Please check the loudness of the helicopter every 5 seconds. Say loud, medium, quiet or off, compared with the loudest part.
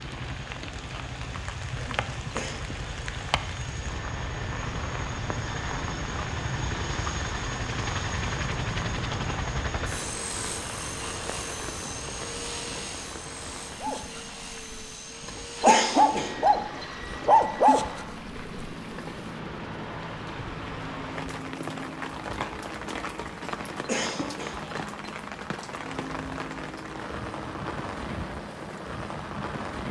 medium, loud, medium, medium, medium, medium.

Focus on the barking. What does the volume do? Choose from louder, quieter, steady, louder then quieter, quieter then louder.
louder.